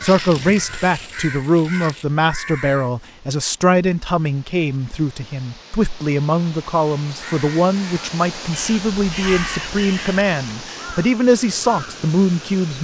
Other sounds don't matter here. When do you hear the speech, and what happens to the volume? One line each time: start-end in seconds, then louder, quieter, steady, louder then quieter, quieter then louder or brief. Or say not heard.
0.0-12.7 steady.